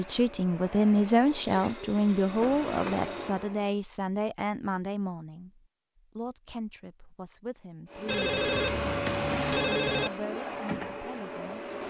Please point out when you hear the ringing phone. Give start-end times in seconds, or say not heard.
1.3-3.2, 8.1-10.1.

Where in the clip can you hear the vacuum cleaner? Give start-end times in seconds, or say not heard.
0.0-3.8, 7.9-11.8.